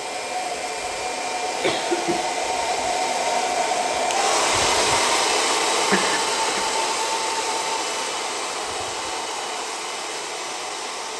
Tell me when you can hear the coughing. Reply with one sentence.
The coughing can be heard from 1.6 to 2.2 s and from 5.9 to 6.7 s.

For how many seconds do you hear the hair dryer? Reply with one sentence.
The hair dryer can be heard for 11 seconds in total.